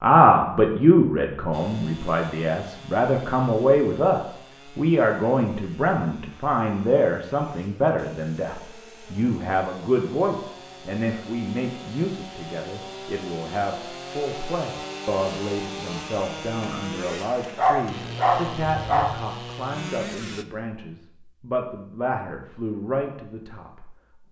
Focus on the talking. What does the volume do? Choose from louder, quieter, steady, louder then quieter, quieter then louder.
quieter.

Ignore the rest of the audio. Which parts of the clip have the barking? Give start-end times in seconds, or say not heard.
17.6-19.2.